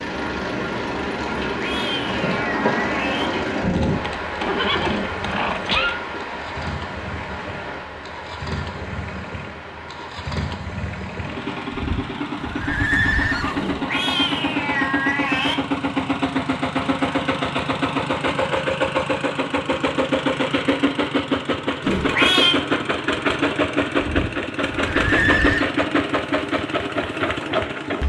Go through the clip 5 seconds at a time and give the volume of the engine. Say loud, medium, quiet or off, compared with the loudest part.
medium, quiet, medium, loud, loud, loud.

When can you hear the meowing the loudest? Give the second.
22 s.